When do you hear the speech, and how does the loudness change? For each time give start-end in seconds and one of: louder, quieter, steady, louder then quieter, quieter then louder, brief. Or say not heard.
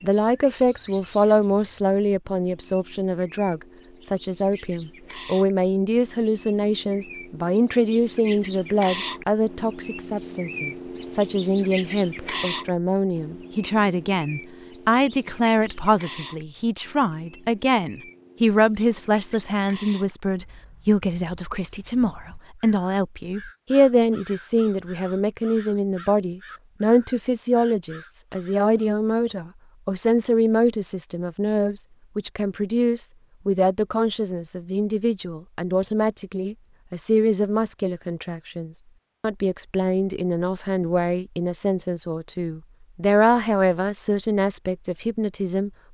0.0-45.7 steady.